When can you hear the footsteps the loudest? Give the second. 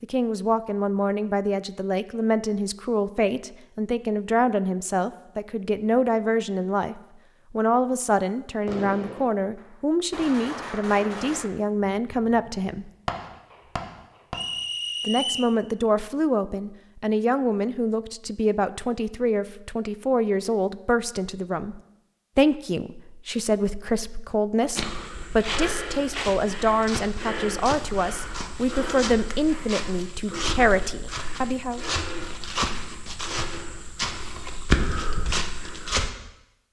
35 s.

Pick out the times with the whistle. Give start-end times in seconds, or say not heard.
14.3-15.6.